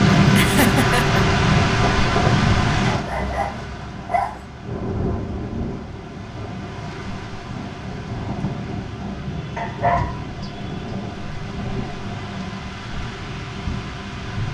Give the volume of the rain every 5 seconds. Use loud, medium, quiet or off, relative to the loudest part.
loud, medium, medium.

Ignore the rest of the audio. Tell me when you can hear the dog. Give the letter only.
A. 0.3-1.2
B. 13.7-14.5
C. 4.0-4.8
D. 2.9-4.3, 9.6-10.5
D.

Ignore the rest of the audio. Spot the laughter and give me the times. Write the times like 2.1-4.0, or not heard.
0.3-1.2.